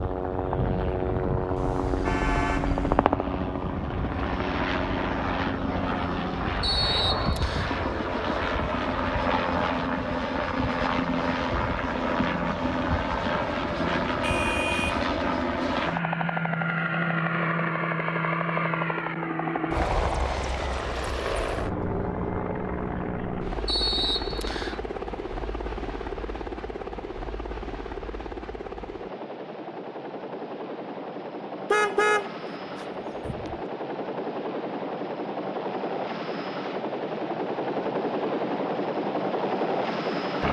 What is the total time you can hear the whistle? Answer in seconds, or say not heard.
2 s.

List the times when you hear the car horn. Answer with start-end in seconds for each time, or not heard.
1.6-3.1, 14.2-15.1, 31.7-33.5.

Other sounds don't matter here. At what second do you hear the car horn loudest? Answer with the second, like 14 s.
32 s.